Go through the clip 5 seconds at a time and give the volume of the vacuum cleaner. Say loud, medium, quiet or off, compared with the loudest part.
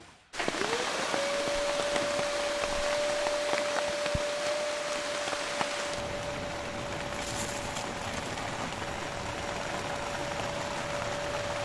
loud, medium, medium.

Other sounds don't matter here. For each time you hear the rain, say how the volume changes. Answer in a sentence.
The rain can be heard from 0.0 to 11.6 s, at a steady volume.